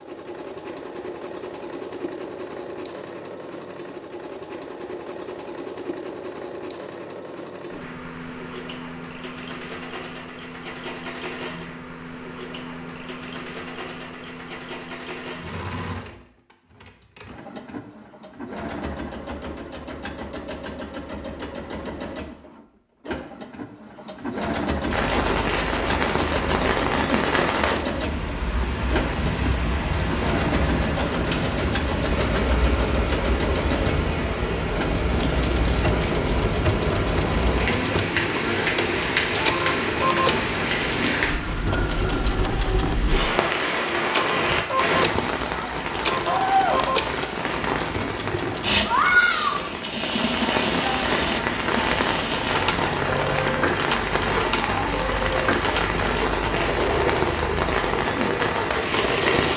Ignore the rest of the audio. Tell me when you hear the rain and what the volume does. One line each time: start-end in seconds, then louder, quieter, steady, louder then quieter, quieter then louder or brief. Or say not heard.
24.9-59.5 steady.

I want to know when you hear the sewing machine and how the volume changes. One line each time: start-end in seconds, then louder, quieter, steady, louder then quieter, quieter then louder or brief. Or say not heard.
0.0-59.5 louder.